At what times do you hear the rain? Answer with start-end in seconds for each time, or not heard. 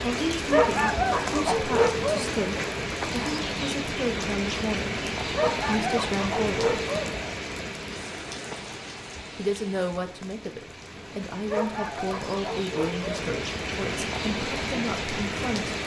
0.0-15.8.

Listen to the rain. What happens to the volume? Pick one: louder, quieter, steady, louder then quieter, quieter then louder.
quieter then louder.